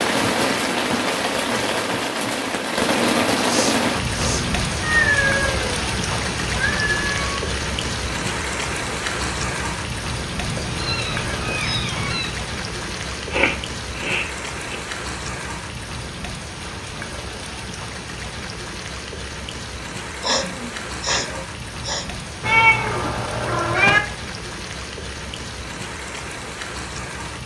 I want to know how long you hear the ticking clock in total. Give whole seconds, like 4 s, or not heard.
not heard.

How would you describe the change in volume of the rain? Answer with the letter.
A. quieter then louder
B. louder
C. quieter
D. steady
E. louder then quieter
C.